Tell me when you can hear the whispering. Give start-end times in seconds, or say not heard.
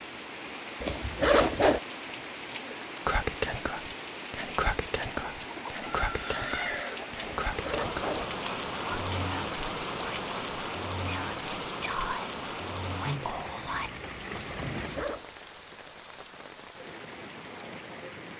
3.0-14.0.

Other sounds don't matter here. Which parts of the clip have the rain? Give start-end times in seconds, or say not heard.
0.0-18.3.